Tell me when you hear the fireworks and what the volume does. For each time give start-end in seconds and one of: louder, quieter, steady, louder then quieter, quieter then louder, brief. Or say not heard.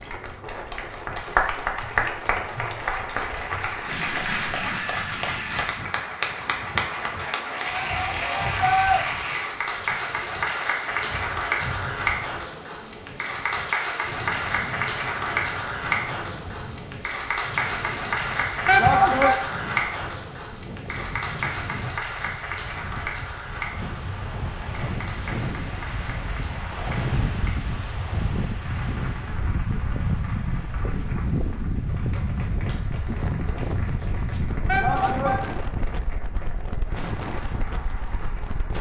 not heard.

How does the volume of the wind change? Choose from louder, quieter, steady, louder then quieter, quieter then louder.
louder.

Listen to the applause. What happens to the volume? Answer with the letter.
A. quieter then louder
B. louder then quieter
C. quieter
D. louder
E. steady
C.